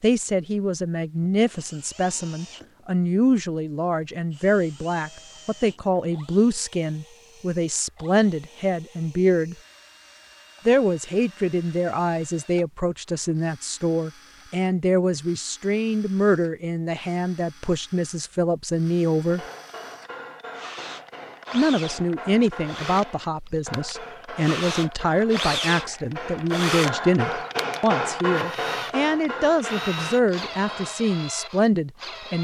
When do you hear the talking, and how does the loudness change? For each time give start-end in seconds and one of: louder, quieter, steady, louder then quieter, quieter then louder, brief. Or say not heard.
0.0-9.6 steady
10.7-19.4 steady
21.5-32.4 steady.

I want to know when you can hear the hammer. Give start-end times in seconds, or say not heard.
19.2-30.9.